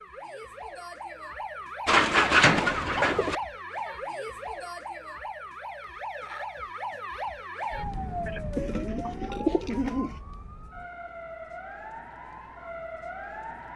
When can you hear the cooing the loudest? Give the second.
2 s.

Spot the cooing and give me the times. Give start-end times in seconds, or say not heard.
1.9-3.4, 8.6-10.2.